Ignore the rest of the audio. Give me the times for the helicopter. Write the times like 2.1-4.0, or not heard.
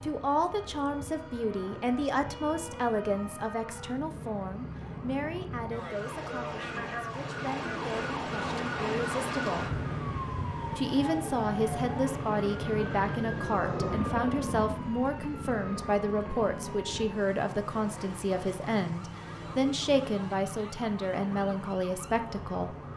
0.0-22.9.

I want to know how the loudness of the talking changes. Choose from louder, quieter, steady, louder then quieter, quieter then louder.
quieter then louder.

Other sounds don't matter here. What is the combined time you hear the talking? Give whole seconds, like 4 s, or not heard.
22 s.